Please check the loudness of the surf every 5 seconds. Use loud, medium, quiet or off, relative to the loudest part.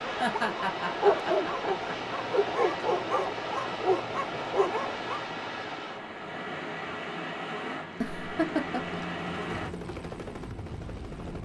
loud, loud, off.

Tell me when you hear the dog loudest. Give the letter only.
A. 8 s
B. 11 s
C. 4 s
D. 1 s
D.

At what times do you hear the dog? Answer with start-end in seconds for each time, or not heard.
0.0-5.2.